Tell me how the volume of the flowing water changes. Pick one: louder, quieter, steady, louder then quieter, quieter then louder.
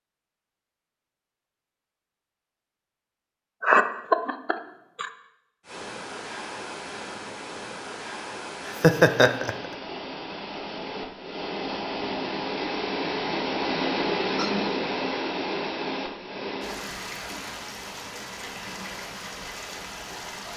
louder then quieter.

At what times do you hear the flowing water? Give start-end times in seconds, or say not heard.
5.6-20.5.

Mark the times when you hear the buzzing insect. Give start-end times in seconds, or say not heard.
not heard.